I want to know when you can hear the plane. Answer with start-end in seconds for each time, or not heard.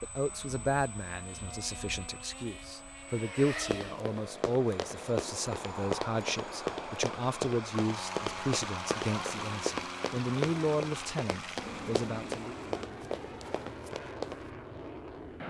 0.0-15.4.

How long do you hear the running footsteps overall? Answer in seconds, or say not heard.
11 s.